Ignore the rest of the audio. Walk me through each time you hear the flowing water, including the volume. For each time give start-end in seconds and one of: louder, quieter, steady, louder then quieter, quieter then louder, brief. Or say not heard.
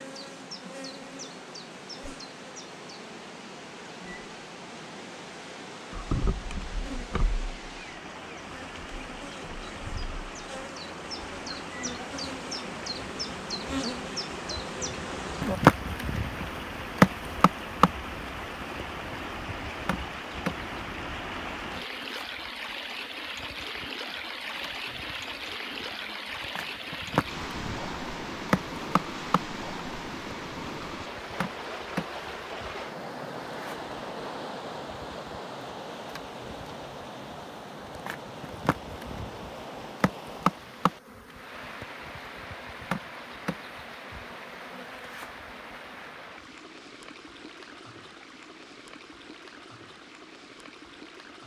0.0-51.4 louder then quieter.